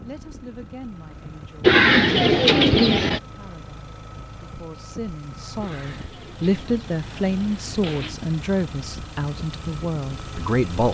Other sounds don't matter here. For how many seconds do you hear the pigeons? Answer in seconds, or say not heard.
4 s.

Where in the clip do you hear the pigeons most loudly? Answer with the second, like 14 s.
2 s.